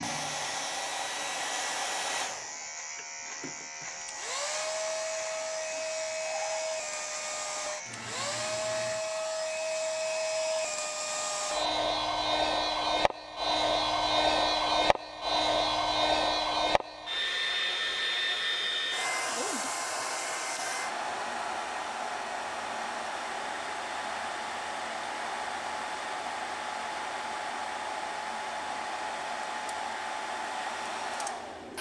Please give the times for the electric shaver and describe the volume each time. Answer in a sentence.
The electric shaver can be heard from 0.0 to 9.1 s, at a steady volume.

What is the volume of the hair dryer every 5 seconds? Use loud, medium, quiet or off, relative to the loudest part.
medium, medium, loud, loud, medium, medium, medium.